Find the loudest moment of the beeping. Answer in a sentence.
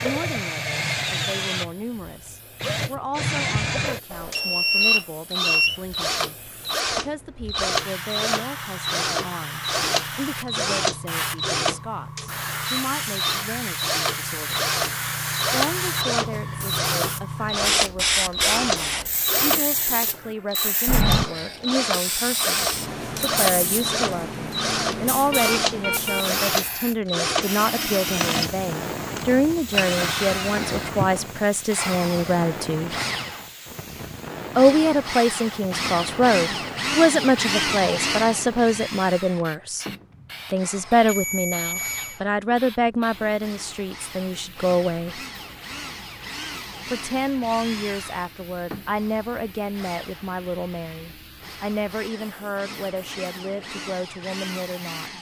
The volume of the beeping peaks at 5 seconds.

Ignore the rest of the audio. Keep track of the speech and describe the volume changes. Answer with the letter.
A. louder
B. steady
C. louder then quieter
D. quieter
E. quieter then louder
C.